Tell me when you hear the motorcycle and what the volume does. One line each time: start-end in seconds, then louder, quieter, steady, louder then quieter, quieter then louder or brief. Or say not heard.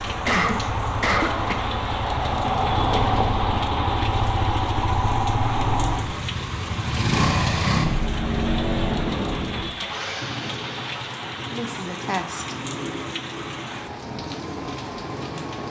0.0-15.6 quieter.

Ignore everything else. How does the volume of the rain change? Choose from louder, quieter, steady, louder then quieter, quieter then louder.
steady.